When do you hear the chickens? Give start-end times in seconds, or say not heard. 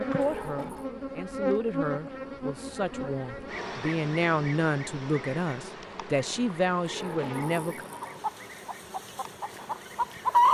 8.0-10.4.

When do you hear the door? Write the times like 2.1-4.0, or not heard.
0.2-0.8, 6.8-8.3.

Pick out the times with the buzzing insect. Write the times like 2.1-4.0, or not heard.
0.0-10.4.